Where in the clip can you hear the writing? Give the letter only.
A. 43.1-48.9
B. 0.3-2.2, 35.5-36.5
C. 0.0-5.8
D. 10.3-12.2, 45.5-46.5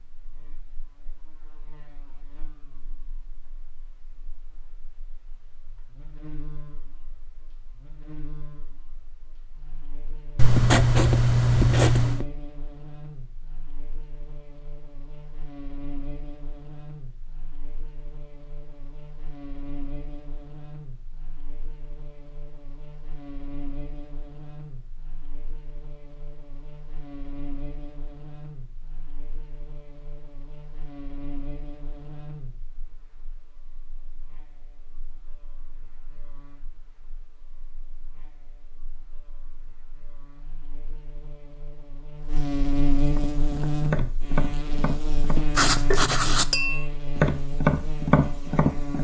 D.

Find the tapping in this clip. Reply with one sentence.
The tapping can be heard from 43.1 to 48.9 s.